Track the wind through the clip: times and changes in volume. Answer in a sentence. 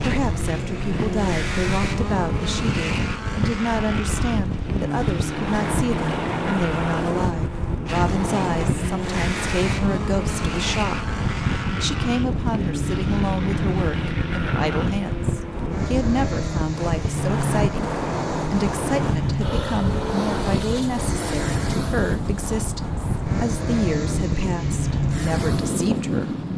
You can hear the wind from 0.0 to 26.5 s, at a steady volume.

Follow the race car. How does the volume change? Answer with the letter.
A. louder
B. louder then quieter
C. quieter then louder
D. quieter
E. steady
E.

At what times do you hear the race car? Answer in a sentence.
You can hear the race car from 0.0 to 26.5 s.